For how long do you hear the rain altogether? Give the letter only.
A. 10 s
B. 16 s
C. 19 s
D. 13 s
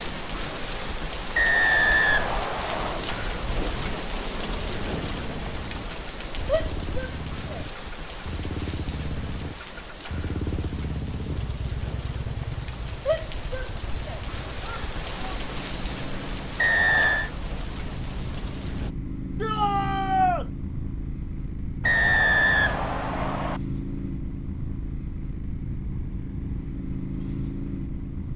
C.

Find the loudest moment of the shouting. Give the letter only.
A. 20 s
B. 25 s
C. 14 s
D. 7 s
A.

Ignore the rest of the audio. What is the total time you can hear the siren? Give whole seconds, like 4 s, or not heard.
not heard.